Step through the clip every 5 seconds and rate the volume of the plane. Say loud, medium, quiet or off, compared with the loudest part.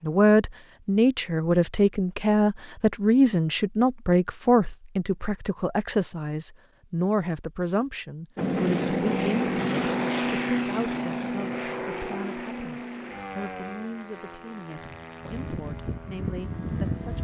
off, loud, medium, medium.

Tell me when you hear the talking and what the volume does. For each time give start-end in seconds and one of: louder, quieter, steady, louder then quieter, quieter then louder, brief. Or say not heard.
0.0-17.1 quieter.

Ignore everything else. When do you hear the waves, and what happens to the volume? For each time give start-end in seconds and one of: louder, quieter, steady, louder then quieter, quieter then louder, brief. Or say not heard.
not heard.